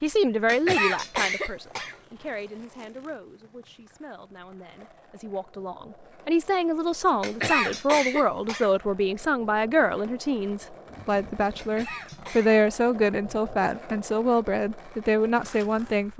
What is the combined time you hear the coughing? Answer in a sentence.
You can hear the coughing for 4 seconds altogether.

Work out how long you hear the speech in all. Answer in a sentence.
You can hear the speech for 16 seconds altogether.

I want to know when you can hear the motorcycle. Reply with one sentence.
You can't hear the motorcycle here.